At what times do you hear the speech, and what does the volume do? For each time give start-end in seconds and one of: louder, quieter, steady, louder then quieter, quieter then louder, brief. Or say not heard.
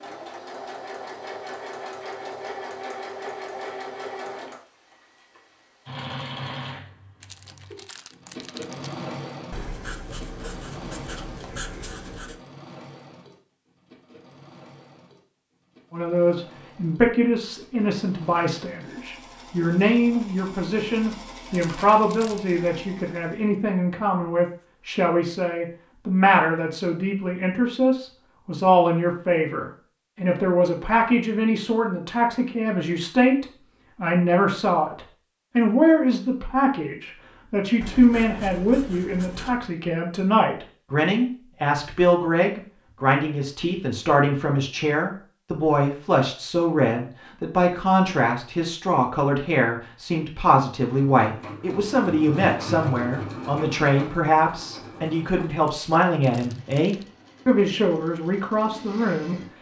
15.9-59.5 steady.